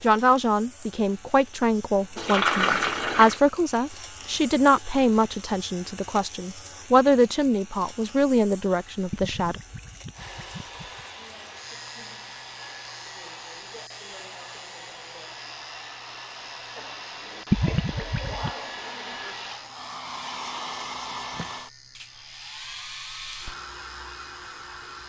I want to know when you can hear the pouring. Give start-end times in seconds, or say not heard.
2.1-3.4, 9.1-11.1, 17.5-18.5.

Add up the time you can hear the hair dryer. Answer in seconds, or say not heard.
15 s.